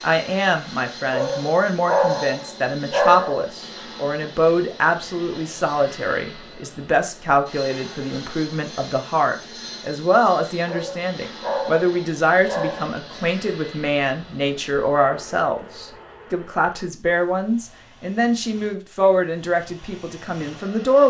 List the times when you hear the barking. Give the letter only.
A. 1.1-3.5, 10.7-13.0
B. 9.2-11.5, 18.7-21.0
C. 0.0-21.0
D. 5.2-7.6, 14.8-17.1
A.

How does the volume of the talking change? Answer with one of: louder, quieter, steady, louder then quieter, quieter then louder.
steady.